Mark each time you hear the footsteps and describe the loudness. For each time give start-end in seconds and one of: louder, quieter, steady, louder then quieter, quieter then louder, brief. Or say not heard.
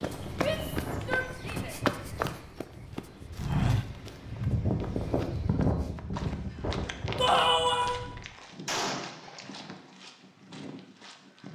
0.0-11.5 quieter.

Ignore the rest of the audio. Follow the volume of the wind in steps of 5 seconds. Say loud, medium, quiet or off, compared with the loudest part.
loud, loud, off.